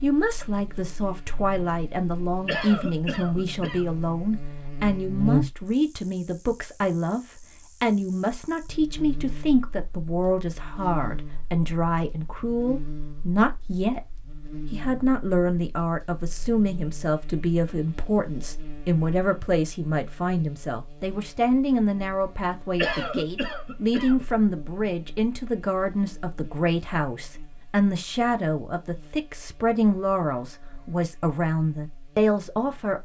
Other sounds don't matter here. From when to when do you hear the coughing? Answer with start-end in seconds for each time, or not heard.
2.5-3.9, 22.8-24.4.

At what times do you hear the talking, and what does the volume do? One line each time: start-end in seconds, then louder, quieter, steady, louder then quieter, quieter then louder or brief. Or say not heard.
0.0-33.0 steady.